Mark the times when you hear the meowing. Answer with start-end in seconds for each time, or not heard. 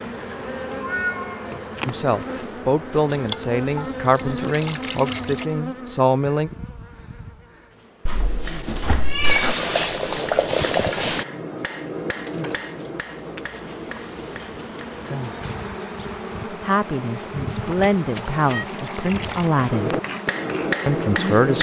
0.7-1.6, 8.1-9.6, 17.6-18.6.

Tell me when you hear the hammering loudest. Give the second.
21 s.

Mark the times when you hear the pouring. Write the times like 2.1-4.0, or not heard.
3.0-5.5, 9.2-11.2, 18.2-19.6.